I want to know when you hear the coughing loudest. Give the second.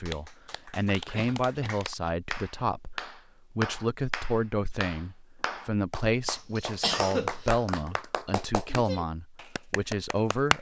7 s.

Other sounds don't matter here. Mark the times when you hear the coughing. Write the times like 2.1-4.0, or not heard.
1.1-1.8, 6.2-8.0.